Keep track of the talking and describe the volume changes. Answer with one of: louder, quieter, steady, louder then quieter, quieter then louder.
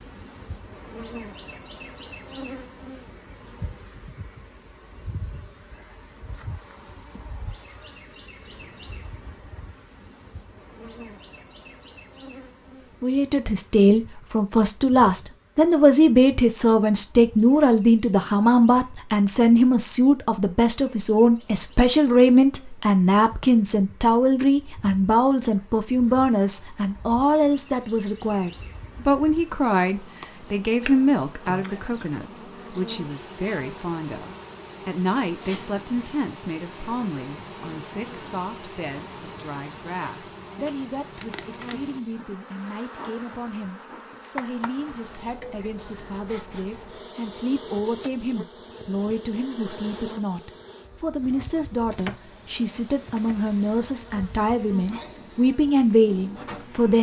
quieter then louder.